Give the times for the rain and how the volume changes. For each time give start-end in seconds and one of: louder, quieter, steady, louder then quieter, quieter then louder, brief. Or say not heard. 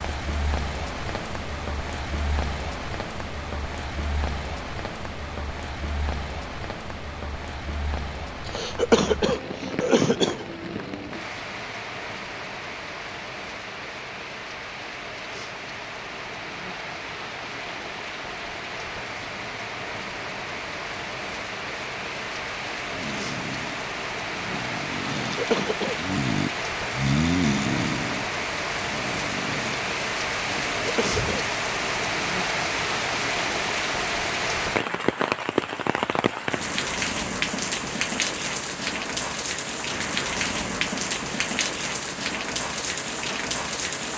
0.0-44.1 louder.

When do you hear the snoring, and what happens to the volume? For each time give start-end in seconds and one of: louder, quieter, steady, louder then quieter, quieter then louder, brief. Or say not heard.
22.8-31.4 louder then quieter.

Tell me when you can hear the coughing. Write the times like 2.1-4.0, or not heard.
8.4-10.4, 25.3-26.0, 30.8-31.4.